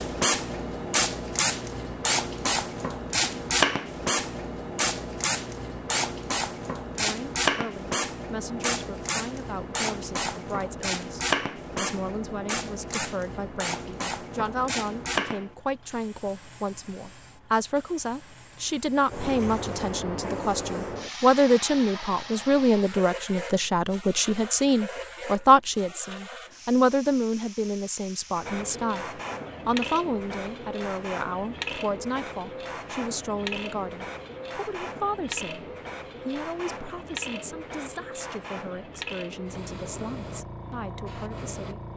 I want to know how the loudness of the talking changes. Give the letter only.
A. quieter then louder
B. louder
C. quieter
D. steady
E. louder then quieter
E.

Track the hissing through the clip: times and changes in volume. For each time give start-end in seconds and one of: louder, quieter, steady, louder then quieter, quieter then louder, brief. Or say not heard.
0.0-41.9 quieter.